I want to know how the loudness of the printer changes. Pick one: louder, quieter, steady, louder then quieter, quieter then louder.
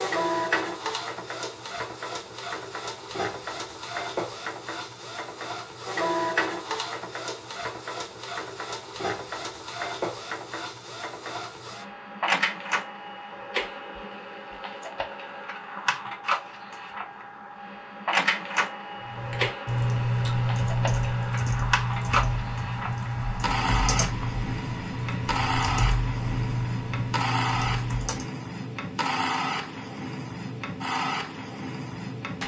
steady.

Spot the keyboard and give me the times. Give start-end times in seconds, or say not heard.
19.0-28.2.